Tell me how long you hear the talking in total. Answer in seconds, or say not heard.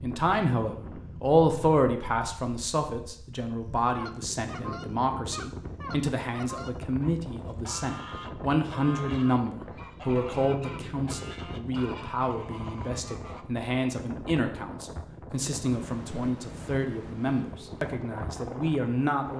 19 s.